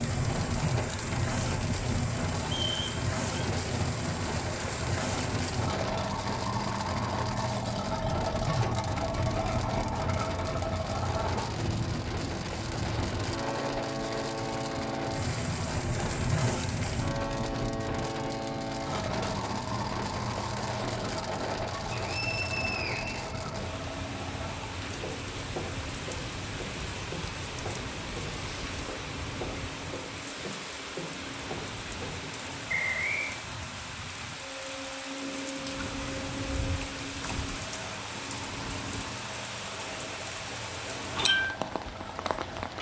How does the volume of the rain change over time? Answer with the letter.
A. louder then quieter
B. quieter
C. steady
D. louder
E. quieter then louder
C.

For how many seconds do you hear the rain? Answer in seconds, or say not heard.
43 s.